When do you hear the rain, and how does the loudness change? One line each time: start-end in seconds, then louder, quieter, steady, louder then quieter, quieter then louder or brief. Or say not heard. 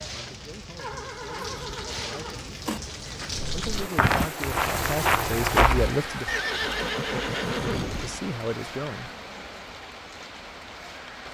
0.0-11.2 louder then quieter.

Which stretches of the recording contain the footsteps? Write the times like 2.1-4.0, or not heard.
3.6-6.0.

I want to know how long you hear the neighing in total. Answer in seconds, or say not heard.
4 s.